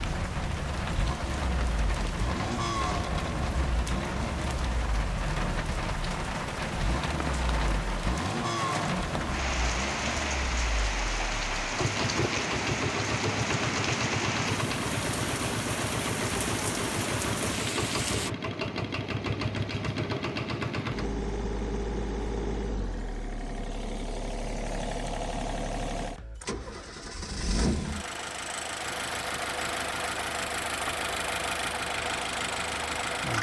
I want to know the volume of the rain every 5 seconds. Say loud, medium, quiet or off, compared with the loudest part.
loud, loud, loud, loud, off, off, off.